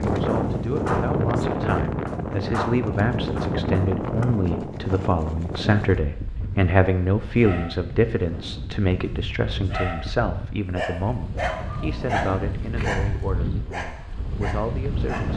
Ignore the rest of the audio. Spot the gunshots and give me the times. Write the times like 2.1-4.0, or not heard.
0.2-4.2.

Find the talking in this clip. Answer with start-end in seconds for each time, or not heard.
0.0-15.3.